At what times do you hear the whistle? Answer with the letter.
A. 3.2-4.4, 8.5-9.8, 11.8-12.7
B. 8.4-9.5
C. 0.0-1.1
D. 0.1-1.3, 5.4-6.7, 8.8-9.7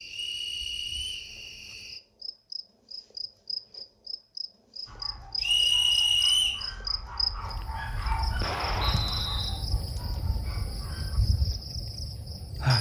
D.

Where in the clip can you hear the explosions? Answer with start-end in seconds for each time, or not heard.
8.4-9.5.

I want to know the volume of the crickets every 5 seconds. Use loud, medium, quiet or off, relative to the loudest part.
medium, loud, loud.